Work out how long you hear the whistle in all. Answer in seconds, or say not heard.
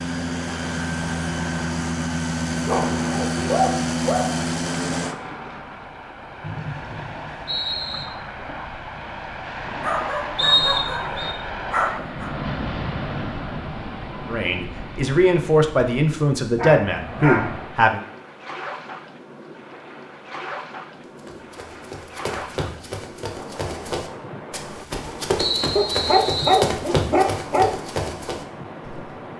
4 s.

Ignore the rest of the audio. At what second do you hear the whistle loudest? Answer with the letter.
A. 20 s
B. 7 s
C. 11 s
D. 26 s
C.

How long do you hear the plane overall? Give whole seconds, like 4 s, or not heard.
5 s.